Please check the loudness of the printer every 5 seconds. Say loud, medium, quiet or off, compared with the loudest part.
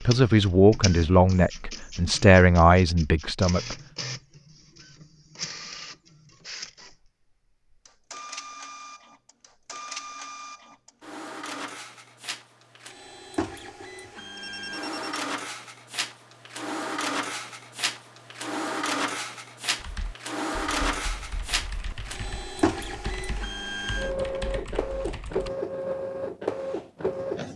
medium, medium, medium, loud, loud, loud.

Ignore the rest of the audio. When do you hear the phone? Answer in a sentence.
The phone can be heard from 14.3 to 15.2 s.